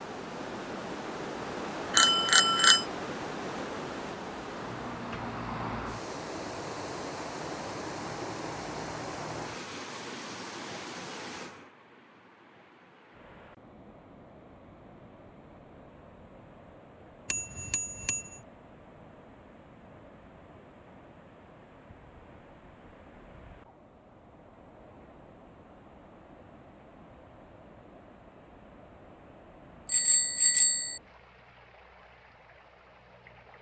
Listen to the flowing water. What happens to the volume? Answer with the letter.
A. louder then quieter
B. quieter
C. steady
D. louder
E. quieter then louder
B.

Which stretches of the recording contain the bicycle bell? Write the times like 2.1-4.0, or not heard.
1.9-2.9, 17.2-18.4, 29.9-31.0.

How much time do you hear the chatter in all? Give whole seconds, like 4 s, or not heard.
not heard.